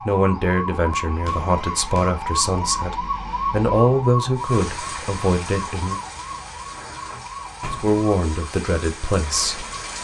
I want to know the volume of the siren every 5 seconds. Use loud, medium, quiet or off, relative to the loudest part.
loud, medium.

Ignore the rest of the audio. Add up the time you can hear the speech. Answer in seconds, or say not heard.
8 s.